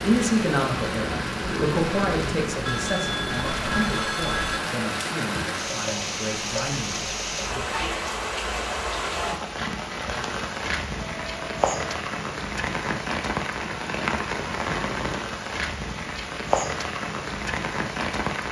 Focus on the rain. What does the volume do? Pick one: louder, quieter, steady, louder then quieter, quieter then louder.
steady.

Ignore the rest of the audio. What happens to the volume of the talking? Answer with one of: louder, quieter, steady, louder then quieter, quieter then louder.
quieter.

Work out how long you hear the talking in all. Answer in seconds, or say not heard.
8 s.